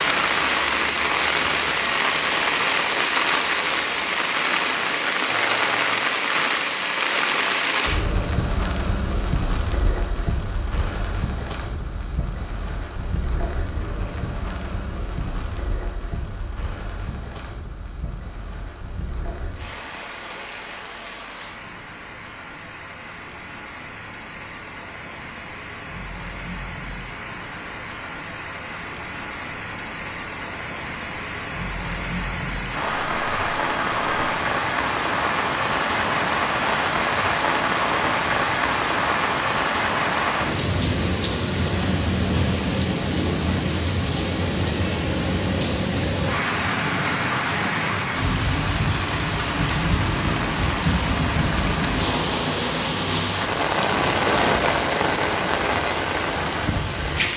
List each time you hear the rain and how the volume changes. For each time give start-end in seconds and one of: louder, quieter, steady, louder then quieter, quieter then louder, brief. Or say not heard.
0.0-57.3 quieter then louder.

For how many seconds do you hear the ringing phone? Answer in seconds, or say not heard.
2 s.